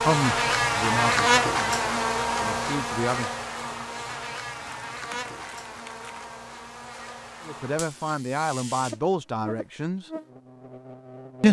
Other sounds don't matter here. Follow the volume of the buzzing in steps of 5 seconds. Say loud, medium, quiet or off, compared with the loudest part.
loud, quiet, quiet.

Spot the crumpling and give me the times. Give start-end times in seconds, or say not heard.
4.5-6.2.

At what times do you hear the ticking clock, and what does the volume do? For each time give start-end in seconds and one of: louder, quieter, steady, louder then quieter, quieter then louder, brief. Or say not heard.
not heard.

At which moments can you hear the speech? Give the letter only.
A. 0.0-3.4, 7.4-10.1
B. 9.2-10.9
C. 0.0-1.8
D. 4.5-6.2
A.